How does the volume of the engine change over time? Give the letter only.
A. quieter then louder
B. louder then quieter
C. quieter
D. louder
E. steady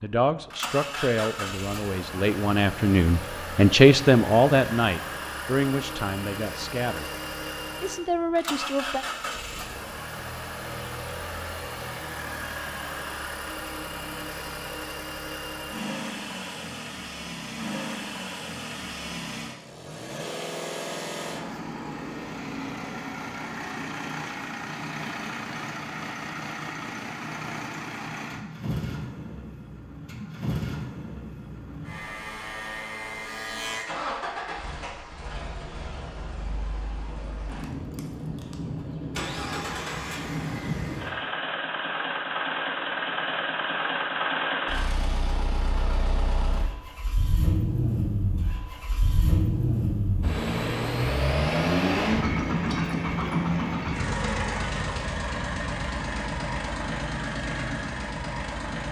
D.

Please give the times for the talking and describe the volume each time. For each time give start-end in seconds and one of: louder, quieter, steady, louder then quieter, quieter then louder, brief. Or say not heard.
0.0-7.1 louder then quieter
7.8-9.1 brief.